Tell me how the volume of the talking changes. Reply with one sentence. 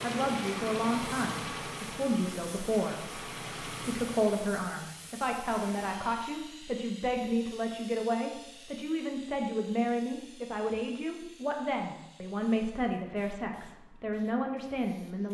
The loudness of the talking stays about the same.